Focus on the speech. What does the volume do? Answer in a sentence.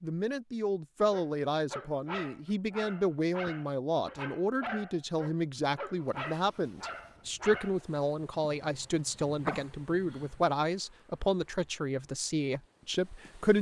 The loudness of the speech stays about the same.